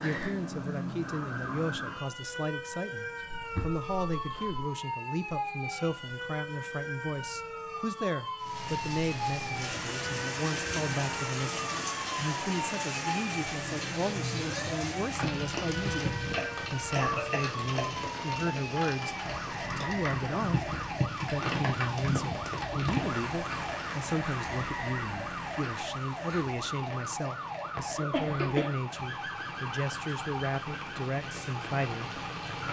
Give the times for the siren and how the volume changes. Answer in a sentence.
You can hear the siren from 0.0 to 32.6 s, at a steady volume.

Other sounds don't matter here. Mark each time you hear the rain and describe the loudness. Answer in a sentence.
You can hear the rain from 8.4 to 32.6 s, getting quieter.